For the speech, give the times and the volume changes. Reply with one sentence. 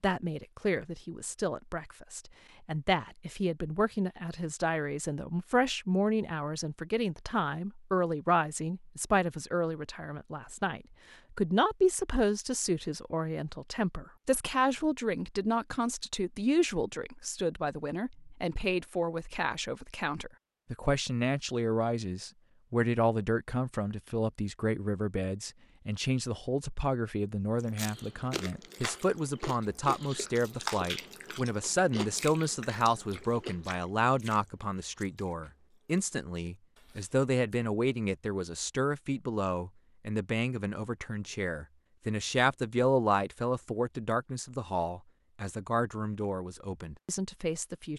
The speech can be heard from 0.0 to 47.9 s, at a steady volume.